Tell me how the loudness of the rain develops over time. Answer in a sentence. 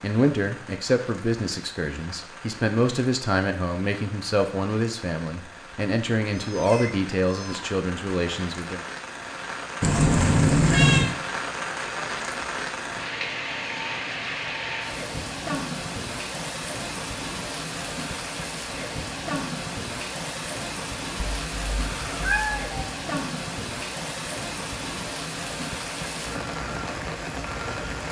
The loudness of the rain goes up.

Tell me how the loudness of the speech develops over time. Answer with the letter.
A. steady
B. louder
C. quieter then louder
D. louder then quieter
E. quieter
A.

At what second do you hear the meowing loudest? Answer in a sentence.
The volume of the meowing peaks at 11 seconds.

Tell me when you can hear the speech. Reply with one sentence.
The speech can be heard from 0.0 to 8.8 s.